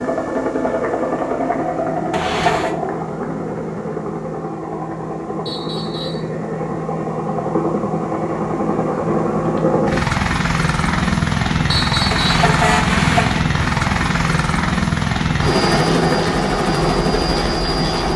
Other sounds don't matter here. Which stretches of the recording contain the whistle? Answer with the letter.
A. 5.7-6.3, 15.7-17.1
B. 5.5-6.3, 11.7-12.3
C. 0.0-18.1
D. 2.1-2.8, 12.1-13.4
B.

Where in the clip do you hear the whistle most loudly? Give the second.
12 s.